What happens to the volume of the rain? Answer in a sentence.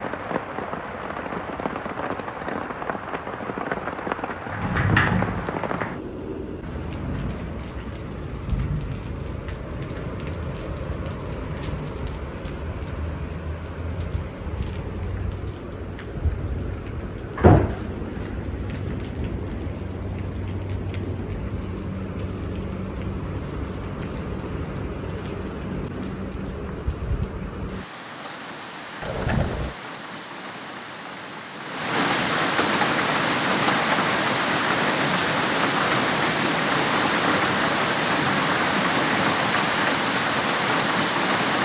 The loudness of the rain goes up.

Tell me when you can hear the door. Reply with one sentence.
You can hear the door from 4.5 to 6.0 s, from 17.4 to 17.9 s and from 29.0 to 29.8 s.